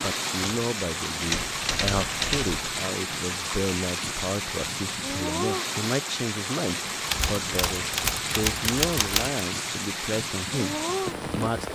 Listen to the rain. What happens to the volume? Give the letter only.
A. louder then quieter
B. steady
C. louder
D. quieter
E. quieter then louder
B.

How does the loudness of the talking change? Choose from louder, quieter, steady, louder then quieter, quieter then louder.
steady.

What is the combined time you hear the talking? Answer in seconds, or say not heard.
12 s.